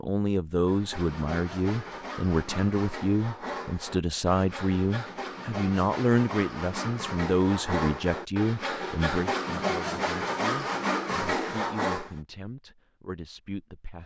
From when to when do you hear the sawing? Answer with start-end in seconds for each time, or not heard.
0.7-12.1.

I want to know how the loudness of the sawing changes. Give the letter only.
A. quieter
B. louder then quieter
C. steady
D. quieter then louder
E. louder
E.